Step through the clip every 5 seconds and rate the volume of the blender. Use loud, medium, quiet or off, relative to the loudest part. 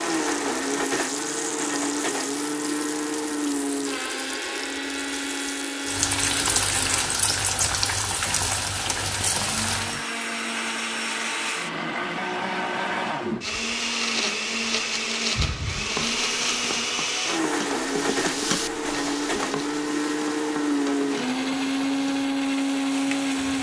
loud, medium, loud, loud, loud.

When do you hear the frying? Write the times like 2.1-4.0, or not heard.
0.0-10.1, 15.8-23.5.